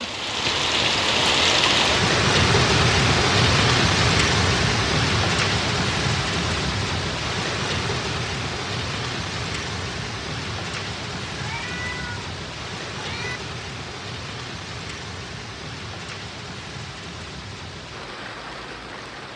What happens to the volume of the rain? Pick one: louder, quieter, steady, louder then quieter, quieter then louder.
quieter.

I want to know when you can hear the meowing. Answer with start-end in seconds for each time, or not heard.
11.3-12.2, 12.9-13.4.